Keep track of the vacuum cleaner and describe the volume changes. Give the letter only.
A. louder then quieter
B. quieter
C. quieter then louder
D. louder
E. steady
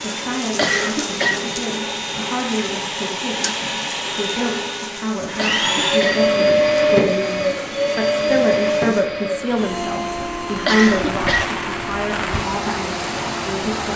A.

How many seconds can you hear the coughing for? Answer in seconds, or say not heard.
3 s.